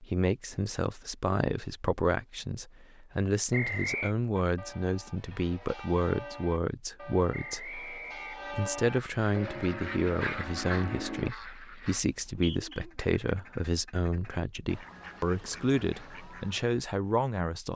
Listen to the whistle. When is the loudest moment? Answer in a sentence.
The volume of the whistle peaks at 4 seconds.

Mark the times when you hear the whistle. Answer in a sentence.
You can hear the whistle from 3.5 to 4.2 s, from 7.3 to 8.6 s and from 12.0 to 12.8 s.